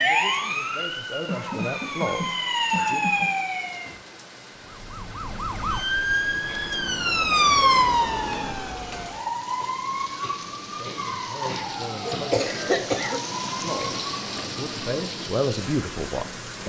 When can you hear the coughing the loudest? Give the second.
13 s.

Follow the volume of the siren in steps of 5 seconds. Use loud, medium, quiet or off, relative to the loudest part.
loud, loud, medium, off.